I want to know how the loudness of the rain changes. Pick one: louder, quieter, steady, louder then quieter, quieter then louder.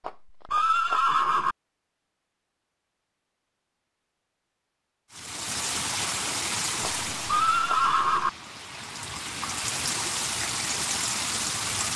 quieter then louder.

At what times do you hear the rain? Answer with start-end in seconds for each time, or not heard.
5.1-11.9.